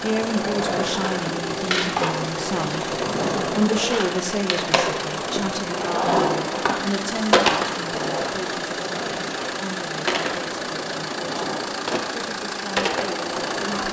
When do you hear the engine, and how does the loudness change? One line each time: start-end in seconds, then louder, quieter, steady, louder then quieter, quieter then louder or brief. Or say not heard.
0.0-13.8 steady.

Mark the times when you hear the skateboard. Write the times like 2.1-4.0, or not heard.
0.1-13.8.